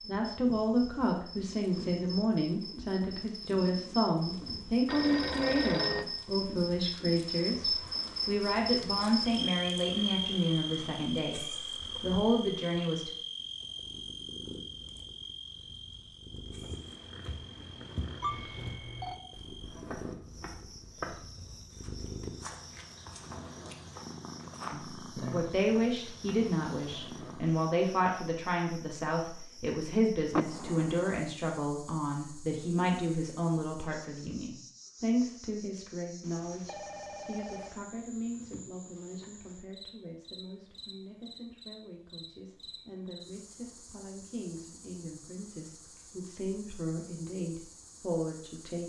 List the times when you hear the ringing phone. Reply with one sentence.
The ringing phone can be heard from 4.8 to 6.0 s, from 18.2 to 19.1 s and from 36.2 to 37.8 s.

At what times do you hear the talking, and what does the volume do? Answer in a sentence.
The talking can be heard from 0.1 to 13.1 s, at a steady volume; and from 24.7 to 48.8 s, getting quieter then louder.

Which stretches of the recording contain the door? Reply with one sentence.
You can hear the door from 30.3 to 31.1 s.